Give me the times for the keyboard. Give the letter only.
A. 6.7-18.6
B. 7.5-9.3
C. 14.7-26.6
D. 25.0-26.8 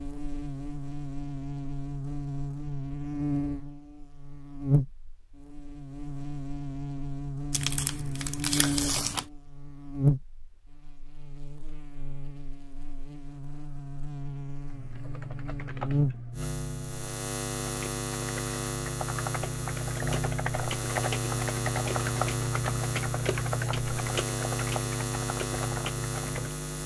C.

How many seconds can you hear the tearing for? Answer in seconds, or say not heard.
2 s.